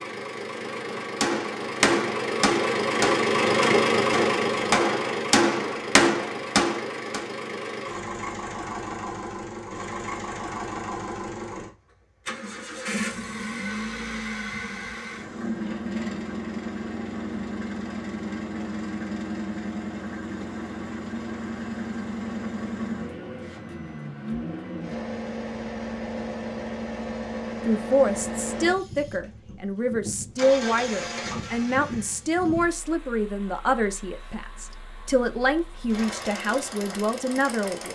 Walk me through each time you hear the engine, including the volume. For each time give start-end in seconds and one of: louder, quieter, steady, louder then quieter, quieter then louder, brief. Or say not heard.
0.0-37.9 quieter.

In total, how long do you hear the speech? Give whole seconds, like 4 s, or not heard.
10 s.